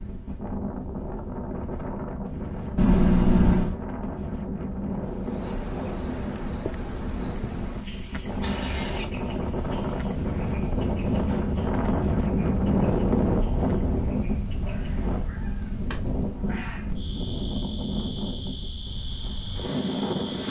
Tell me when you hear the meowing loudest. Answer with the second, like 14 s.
3 s.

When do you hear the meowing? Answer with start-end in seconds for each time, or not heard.
2.8-3.8, 8.4-9.1, 14.6-16.9.